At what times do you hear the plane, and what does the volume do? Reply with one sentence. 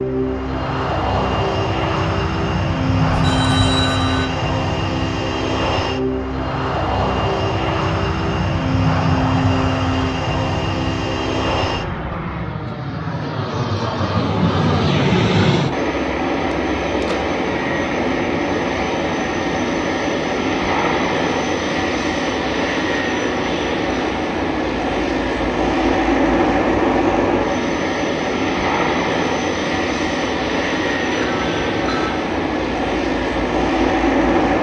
The plane can be heard from 0.0 to 34.5 s, at a steady volume.